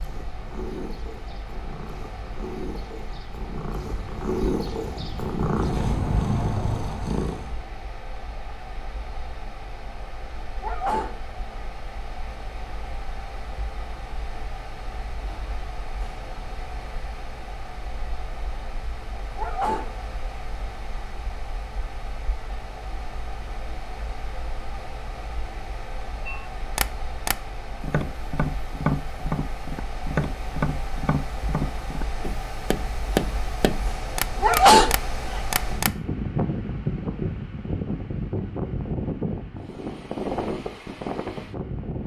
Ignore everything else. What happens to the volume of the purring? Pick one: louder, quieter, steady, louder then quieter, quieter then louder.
louder.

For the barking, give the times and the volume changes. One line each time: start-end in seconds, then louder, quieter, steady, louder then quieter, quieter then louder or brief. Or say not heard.
not heard.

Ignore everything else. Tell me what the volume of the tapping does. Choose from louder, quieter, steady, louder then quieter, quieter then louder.
steady.